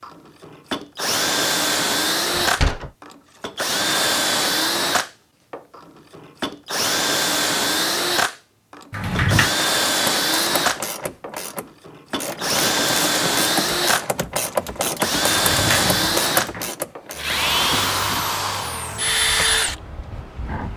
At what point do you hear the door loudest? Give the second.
9 s.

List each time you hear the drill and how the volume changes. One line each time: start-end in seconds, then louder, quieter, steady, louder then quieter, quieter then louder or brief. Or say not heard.
0.0-20.7 steady.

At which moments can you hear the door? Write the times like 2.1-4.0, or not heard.
2.3-2.9, 8.9-9.5, 15.2-16.7.